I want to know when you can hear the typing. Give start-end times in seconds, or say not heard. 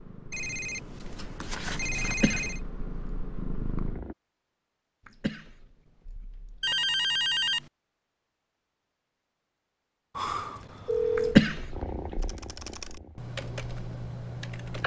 12.2-14.8.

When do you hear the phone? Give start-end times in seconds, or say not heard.
0.3-2.6, 6.6-7.7, 10.2-11.3.